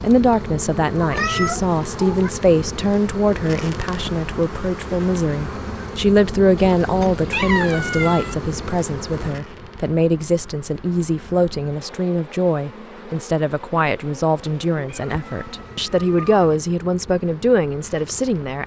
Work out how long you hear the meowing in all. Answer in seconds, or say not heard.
5 s.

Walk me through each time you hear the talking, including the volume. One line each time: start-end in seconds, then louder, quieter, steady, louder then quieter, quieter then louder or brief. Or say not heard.
0.0-18.6 steady.